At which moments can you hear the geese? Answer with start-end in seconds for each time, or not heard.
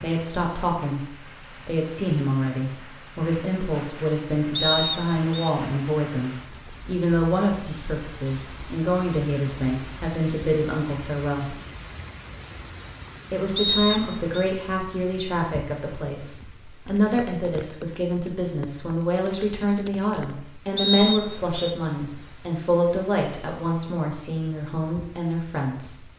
not heard.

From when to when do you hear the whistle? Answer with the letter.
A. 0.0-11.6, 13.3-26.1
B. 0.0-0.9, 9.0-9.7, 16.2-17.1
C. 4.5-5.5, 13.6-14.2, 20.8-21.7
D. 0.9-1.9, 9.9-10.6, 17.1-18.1
C.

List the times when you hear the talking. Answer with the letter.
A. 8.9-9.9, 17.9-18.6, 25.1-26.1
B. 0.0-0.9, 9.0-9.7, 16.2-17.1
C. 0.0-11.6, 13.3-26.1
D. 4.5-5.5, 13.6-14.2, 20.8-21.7
C.